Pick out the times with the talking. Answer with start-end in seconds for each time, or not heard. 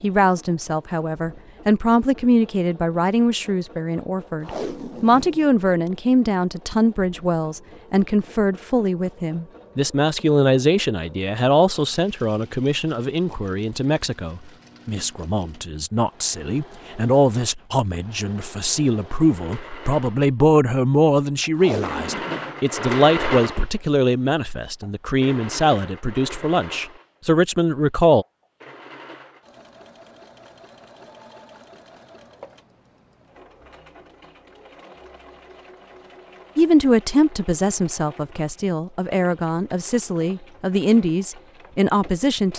0.0-28.2, 36.5-42.5.